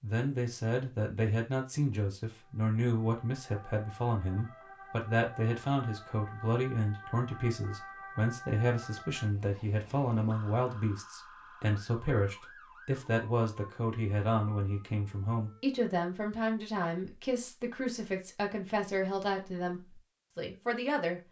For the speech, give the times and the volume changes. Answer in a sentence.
You can hear the speech from 0.0 to 21.2 s, at a steady volume.